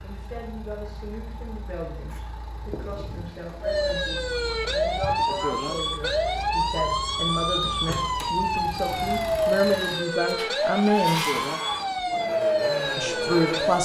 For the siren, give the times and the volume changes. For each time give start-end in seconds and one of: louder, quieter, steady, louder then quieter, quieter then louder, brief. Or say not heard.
3.6-13.8 steady.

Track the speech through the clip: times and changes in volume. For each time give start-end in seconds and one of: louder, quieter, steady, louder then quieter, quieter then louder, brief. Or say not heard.
0.0-11.2 louder
12.9-13.8 brief.